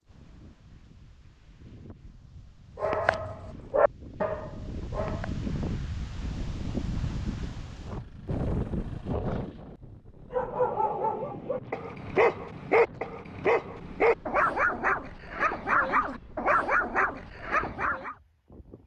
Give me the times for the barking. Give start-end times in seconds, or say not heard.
2.8-5.4, 10.3-18.1.